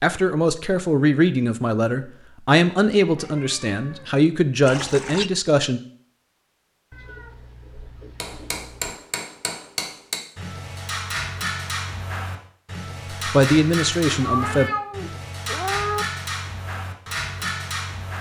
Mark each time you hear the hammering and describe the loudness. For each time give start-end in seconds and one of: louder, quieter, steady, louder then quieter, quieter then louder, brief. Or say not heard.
8.2-18.1 steady.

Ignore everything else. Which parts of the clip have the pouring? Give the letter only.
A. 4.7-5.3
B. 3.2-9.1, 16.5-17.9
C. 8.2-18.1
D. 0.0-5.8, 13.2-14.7
A.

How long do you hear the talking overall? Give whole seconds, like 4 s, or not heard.
7 s.